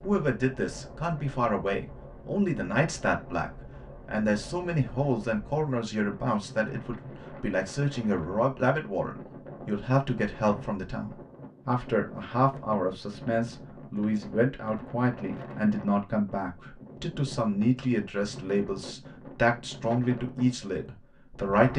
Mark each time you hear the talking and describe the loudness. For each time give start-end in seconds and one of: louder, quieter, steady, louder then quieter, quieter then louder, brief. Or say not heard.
0.0-21.7 steady.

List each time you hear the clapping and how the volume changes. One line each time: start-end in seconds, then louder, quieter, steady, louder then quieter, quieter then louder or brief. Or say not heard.
not heard.